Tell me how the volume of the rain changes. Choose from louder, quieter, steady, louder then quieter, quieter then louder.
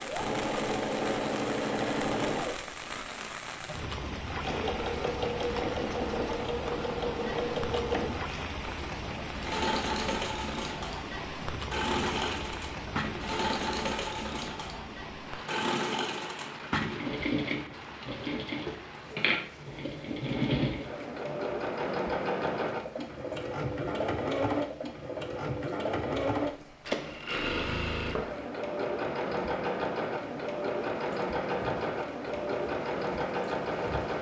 quieter.